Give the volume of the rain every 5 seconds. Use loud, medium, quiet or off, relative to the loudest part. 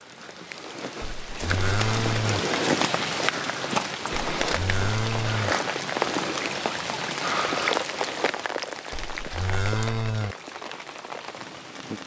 loud, loud, medium.